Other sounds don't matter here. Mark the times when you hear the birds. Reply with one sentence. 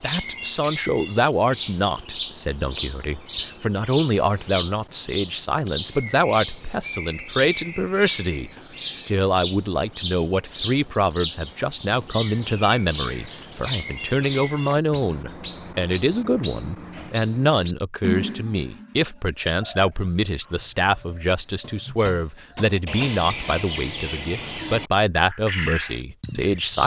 The birds can be heard from 0.0 to 26.8 s.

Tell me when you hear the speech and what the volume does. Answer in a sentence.
You can hear the speech from 0.0 to 26.8 s, at a steady volume.